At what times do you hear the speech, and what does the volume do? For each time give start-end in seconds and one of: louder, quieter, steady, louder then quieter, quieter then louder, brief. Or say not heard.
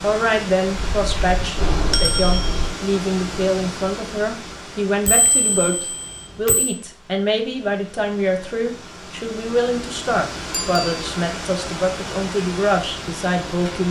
0.0-13.8 steady.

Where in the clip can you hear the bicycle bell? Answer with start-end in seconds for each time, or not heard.
0.7-2.7, 5.0-6.8, 10.5-10.9.